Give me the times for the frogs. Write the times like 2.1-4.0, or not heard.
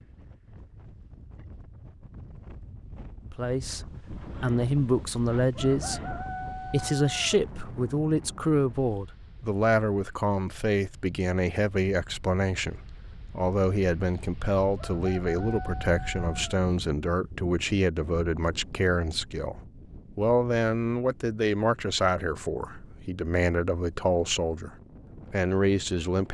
not heard.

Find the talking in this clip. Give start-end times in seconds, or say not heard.
3.3-19.6, 20.1-26.2.